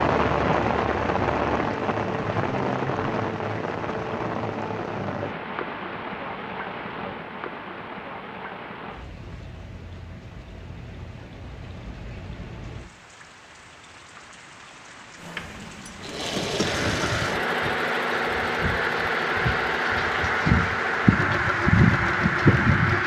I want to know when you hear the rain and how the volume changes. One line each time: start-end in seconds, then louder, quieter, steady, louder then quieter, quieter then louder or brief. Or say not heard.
0.0-23.0 quieter then louder.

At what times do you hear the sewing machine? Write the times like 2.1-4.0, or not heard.
15.2-23.0.